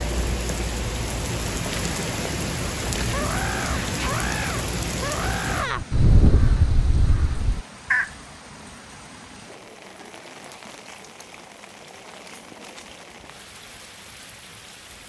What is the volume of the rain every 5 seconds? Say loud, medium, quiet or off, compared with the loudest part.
loud, medium, quiet.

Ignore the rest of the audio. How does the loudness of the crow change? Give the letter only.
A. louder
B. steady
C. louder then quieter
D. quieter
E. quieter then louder
C.